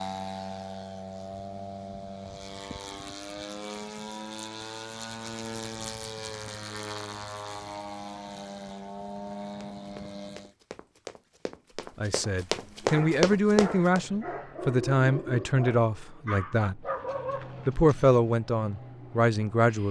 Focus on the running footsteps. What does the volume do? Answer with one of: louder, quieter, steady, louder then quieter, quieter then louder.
louder.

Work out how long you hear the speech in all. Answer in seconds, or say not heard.
7 s.